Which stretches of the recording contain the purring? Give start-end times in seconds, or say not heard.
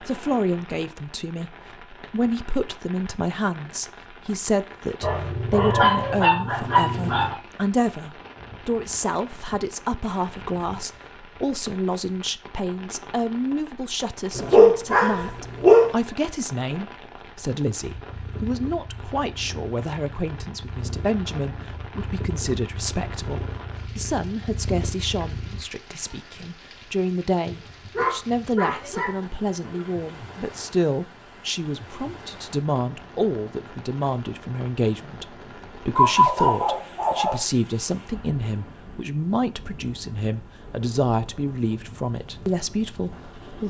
17.8-25.6.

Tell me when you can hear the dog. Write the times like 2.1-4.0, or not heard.
5.0-7.3, 14.3-15.9, 27.9-29.9, 36.0-37.4.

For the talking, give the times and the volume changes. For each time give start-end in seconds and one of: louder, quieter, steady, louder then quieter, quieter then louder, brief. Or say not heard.
0.1-43.6 steady.